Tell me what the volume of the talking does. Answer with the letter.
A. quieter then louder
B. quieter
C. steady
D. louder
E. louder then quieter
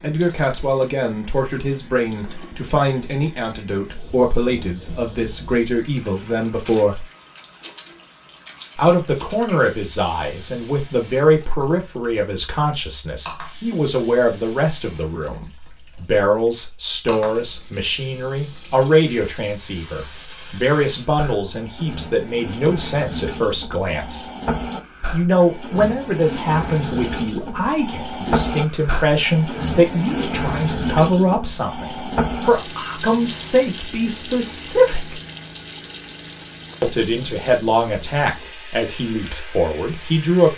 C.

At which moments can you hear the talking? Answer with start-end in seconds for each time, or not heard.
0.0-7.0, 8.8-24.2, 25.1-35.1, 36.8-40.5.